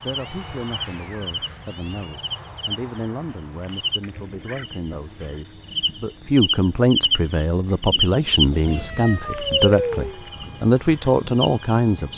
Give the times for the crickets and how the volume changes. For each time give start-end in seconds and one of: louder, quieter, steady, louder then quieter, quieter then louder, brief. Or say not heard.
0.0-12.1 louder then quieter.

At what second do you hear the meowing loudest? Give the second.
10 s.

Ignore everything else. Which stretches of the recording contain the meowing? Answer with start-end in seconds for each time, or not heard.
0.1-2.1, 4.3-4.7, 8.3-10.2.